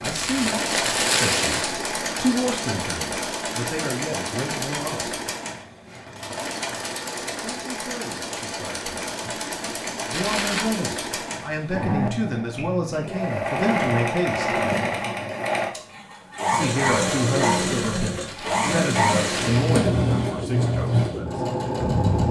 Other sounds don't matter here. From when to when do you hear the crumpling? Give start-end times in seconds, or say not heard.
0.0-1.8, 10.1-10.8, 18.2-19.9.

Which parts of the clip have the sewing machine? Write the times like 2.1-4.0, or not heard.
0.0-22.2.